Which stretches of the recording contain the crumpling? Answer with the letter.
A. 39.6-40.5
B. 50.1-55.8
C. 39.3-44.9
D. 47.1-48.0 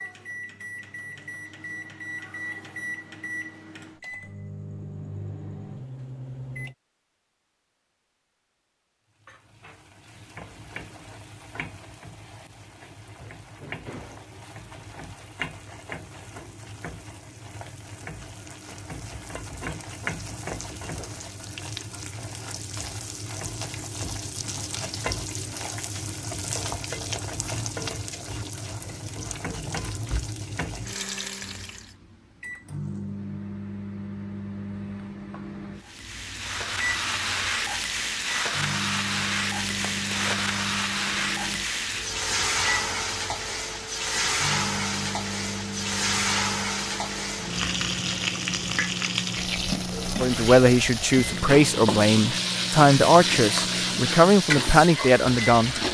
A.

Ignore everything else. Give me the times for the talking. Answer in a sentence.
The talking can be heard from 50.1 to 55.8 s.